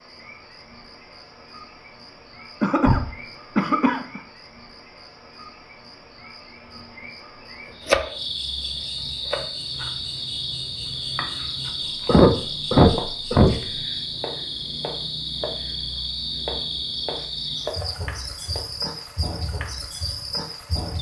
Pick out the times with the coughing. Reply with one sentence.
You can hear the coughing from 2.6 to 4.2 s and from 12.1 to 13.6 s.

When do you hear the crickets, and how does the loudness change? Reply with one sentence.
You can hear the crickets from 0.0 to 20.9 s, getting louder.